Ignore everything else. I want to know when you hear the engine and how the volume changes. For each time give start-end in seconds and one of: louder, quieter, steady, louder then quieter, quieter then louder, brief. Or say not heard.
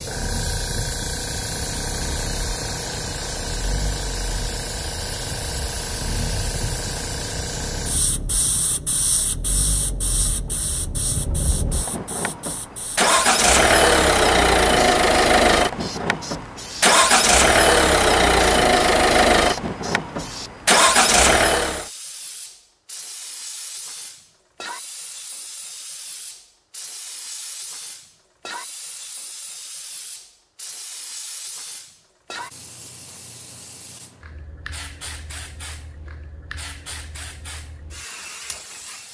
0.0-21.9 louder.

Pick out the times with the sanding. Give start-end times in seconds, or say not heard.
not heard.